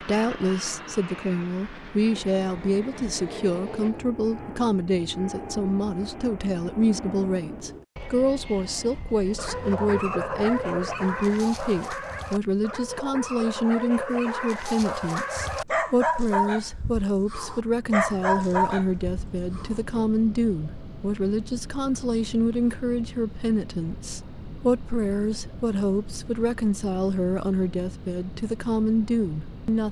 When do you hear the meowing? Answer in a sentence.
The meowing can't be heard in this clip.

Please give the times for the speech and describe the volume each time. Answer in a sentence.
The speech can be heard from 0.0 to 29.8 s, at a steady volume.